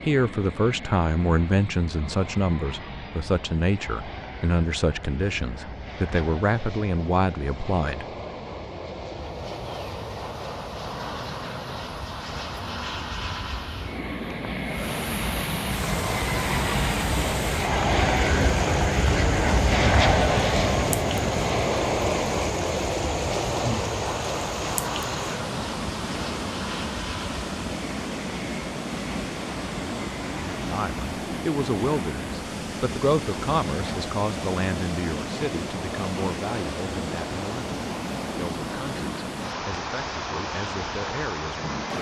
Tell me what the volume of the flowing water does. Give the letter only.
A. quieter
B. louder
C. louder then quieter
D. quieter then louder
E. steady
E.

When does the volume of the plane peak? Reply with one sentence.
The volume of the plane peaks at 20 seconds.